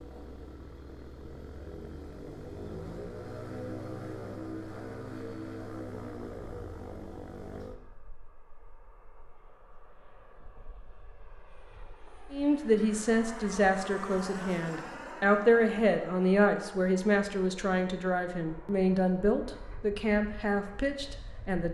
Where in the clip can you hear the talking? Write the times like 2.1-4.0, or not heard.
12.3-21.6.